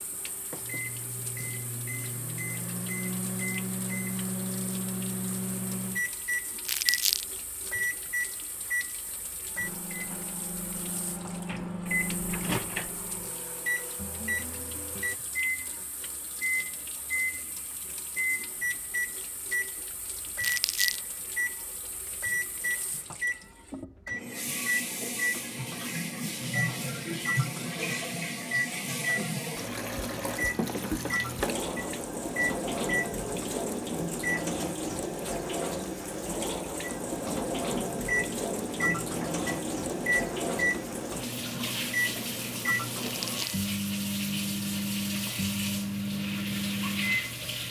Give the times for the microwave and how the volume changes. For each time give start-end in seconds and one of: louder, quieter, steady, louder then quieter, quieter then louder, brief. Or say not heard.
0.0-34.5 steady
36.8-47.4 steady.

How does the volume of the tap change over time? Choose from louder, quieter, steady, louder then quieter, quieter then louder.
louder.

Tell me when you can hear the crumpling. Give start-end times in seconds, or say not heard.
6.7-7.2, 20.4-21.0, 43.0-43.6.